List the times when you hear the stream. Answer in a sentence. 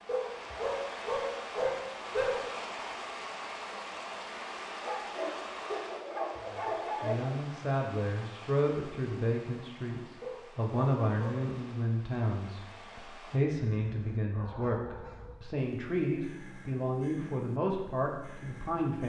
You can hear the stream from 0.0 to 13.4 s.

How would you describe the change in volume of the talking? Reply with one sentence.
The loudness of the talking stays about the same.